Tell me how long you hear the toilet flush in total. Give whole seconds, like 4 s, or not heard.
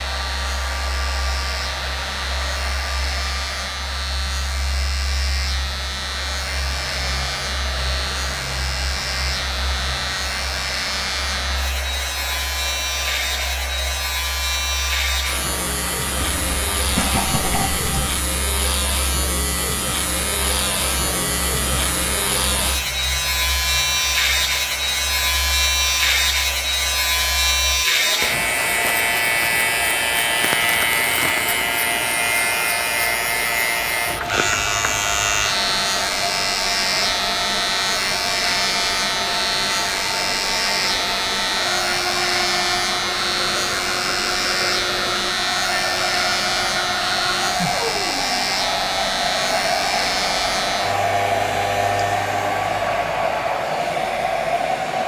2 s.